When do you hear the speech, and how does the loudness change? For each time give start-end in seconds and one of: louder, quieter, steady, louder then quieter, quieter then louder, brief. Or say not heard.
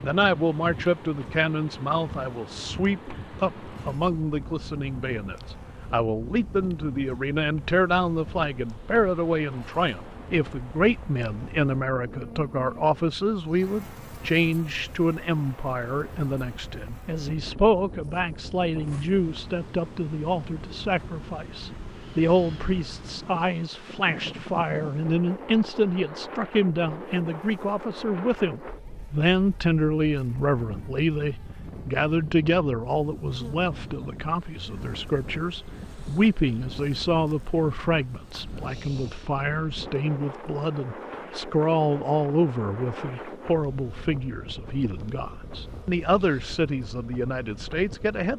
0.0-48.3 steady.